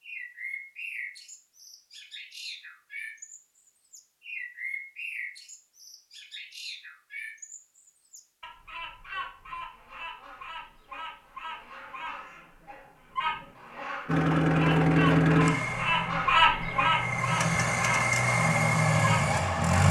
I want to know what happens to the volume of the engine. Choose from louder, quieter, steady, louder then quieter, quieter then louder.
quieter then louder.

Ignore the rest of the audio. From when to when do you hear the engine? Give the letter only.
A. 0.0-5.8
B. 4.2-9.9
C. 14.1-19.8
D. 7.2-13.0
C.